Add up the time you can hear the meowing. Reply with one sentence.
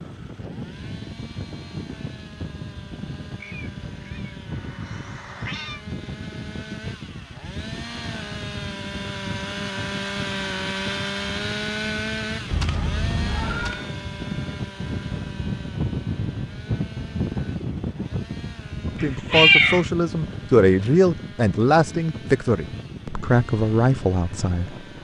You can hear the meowing for 5 seconds altogether.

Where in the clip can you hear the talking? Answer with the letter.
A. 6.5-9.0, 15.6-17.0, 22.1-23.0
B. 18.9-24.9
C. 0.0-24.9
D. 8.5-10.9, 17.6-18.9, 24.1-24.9
B.